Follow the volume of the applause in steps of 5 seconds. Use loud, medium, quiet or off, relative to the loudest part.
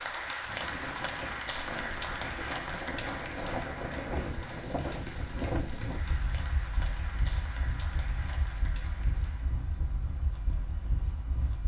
loud, medium, off.